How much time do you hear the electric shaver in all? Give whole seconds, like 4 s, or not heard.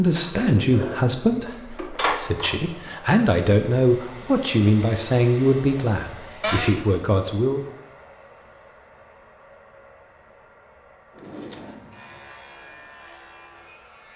2 s.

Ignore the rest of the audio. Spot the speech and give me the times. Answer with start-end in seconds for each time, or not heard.
0.0-7.6.